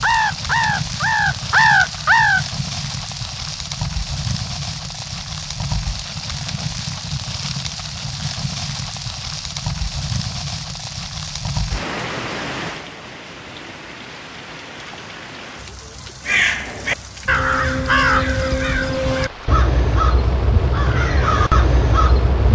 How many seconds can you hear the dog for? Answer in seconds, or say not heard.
not heard.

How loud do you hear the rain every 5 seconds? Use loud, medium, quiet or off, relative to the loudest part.
loud, loud, loud, medium, medium.